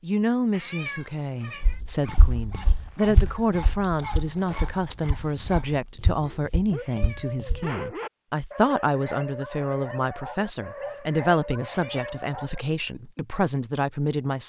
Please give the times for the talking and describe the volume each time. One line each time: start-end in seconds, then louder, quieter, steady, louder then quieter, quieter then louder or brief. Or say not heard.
0.0-14.4 steady.